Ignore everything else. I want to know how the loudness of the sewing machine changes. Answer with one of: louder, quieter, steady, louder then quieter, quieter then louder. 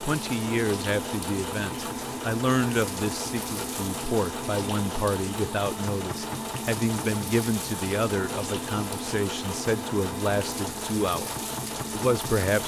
steady.